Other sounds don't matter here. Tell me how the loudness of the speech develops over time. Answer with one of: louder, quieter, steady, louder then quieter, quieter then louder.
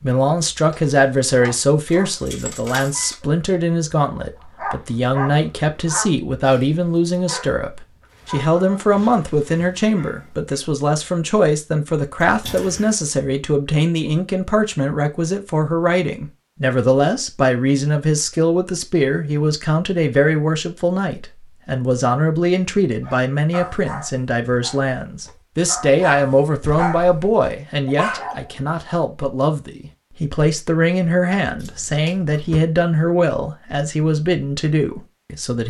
steady.